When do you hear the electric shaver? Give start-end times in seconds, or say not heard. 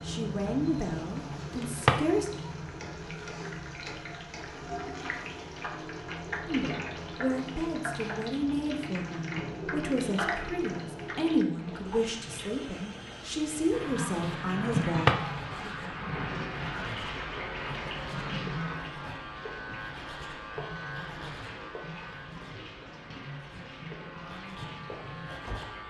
13.7-25.8.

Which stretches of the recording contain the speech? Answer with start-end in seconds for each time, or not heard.
0.1-2.3, 6.5-15.1.